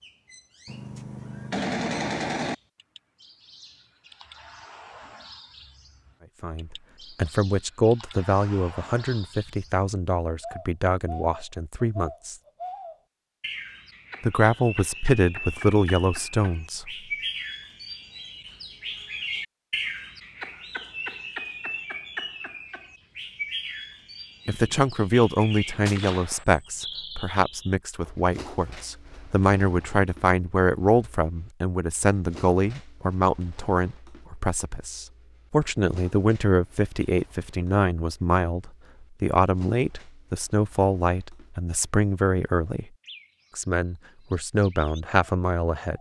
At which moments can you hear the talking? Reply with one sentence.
You can hear the talking from 6.4 to 12.3 s, from 14.2 to 16.9 s, from 24.4 to 42.9 s and from 43.5 to 45.9 s.